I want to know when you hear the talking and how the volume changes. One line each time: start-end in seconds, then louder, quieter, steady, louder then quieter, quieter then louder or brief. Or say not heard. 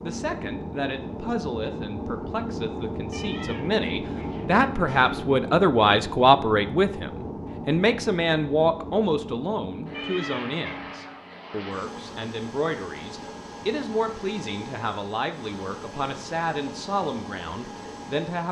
0.0-18.4 louder then quieter.